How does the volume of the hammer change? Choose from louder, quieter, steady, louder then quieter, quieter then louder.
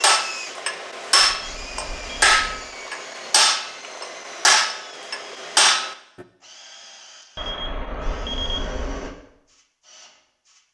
steady.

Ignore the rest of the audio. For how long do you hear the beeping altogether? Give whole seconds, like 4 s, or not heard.
3 s.